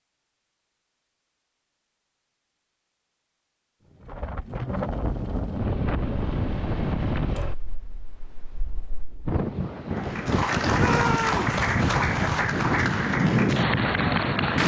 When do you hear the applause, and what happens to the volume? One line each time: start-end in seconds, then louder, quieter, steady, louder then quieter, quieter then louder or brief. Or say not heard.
9.9-14.6 steady.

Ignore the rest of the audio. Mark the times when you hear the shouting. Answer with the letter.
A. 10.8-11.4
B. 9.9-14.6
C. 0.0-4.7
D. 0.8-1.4
A.